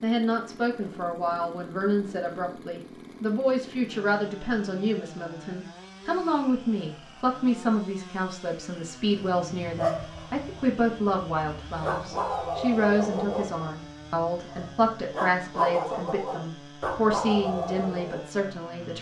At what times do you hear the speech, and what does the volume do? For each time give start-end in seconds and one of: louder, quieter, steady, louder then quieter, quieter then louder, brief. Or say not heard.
0.0-18.9 steady.